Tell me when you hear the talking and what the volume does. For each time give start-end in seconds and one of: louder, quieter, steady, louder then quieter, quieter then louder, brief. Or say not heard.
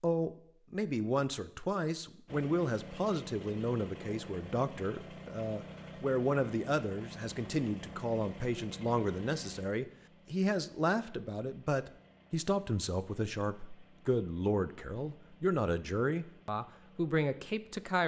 0.0-18.0 steady.